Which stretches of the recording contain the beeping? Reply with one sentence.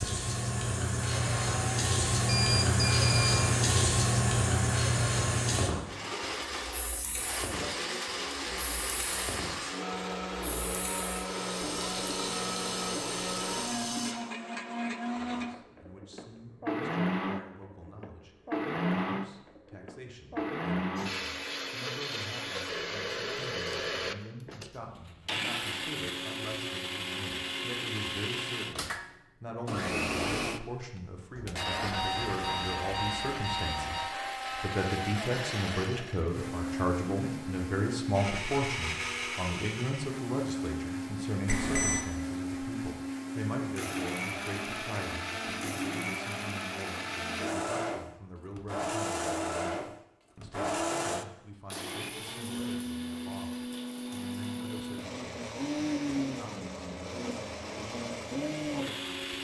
You can hear the beeping from 2.2 to 3.5 s, from 31.4 to 34.0 s and from 41.5 to 42.0 s.